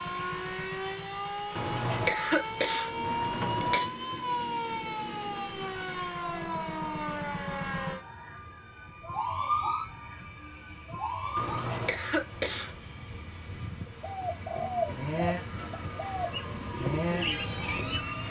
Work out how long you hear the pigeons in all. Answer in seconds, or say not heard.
4 s.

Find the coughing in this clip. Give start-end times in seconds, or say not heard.
1.6-3.9, 11.3-12.8.